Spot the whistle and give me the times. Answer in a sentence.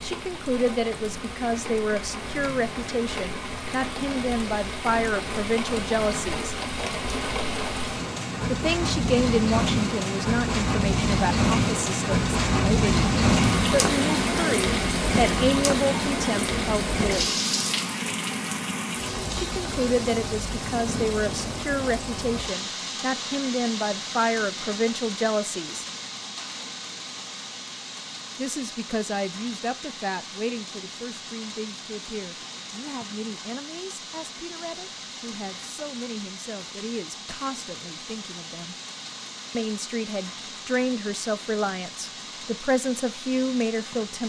You can't hear the whistle here.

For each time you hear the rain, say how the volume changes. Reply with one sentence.
The rain can be heard from 0.0 to 44.2 s, getting louder then quieter.